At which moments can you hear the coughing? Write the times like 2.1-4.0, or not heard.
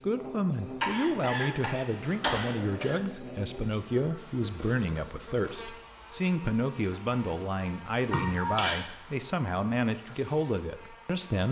0.8-3.0, 8.1-8.8.